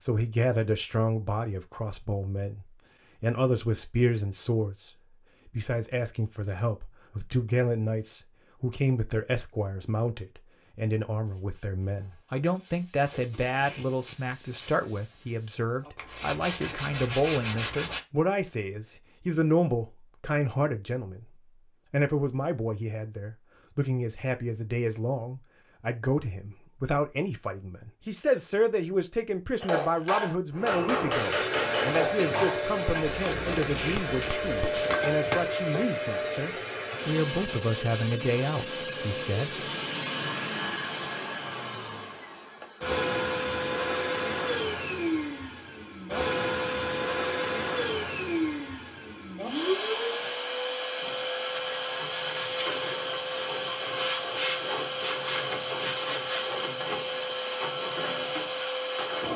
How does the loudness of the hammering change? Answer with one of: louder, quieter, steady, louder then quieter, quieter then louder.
quieter.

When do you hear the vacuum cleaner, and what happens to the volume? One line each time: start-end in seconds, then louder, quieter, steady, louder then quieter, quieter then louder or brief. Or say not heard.
30.5-59.3 steady.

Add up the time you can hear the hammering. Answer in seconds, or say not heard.
6 s.